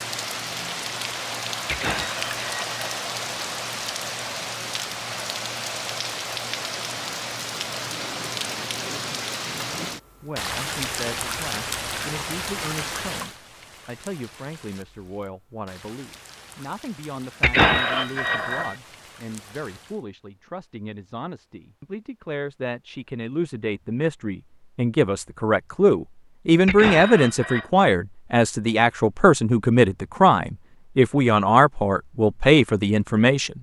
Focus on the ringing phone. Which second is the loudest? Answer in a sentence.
The loudest moment of the ringing phone is at 18 seconds.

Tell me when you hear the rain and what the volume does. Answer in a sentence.
The rain can be heard from 0.0 to 20.1 s, getting quieter.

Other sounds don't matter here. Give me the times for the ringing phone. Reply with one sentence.
You can hear the ringing phone from 1.6 to 3.0 s, from 17.4 to 18.8 s and from 26.6 to 27.6 s.